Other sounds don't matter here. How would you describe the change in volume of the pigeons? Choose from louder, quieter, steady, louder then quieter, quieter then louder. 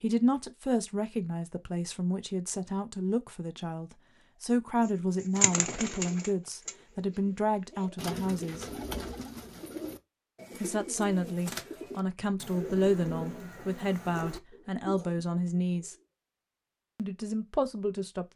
quieter.